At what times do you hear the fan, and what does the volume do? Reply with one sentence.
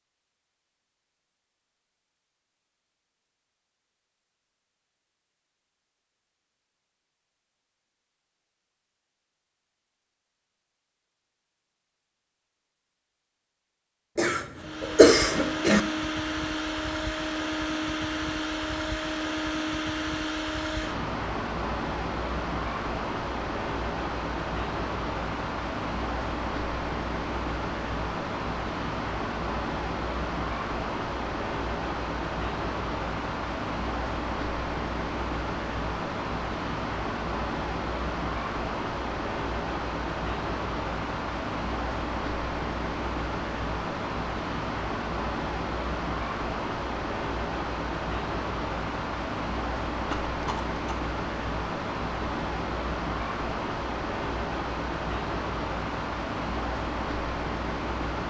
You can hear the fan from 14.6 to 58.2 s, at a steady volume.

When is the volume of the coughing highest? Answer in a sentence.
The loudest moment of the coughing is at 15 seconds.